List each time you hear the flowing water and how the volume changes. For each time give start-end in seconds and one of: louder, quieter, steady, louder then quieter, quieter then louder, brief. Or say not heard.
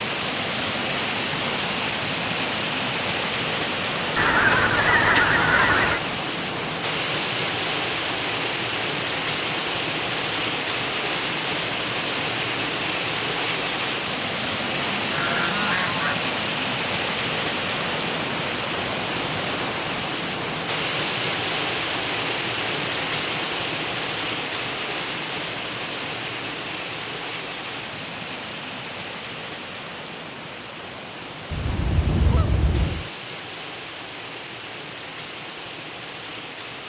0.0-36.8 quieter.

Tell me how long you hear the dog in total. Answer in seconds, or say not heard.
not heard.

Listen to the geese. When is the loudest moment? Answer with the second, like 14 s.
5 s.